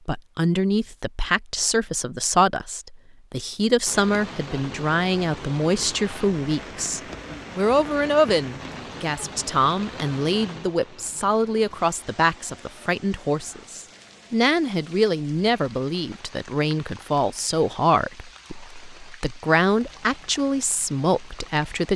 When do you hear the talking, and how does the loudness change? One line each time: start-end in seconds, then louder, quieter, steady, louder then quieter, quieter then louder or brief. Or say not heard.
0.1-21.9 steady.